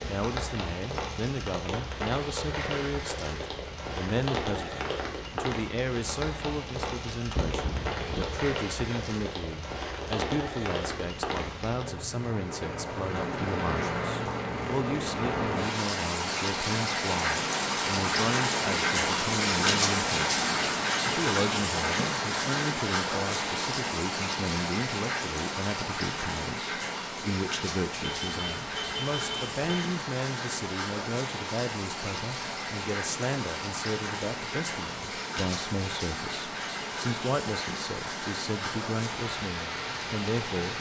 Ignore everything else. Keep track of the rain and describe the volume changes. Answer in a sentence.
The volume of the rain goes up, then down.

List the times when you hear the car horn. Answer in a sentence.
You can hear the car horn from 7.3 to 8.2 s and from 28.0 to 29.6 s.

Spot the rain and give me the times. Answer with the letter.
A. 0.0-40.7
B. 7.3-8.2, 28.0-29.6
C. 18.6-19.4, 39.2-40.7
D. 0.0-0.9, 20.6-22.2
A.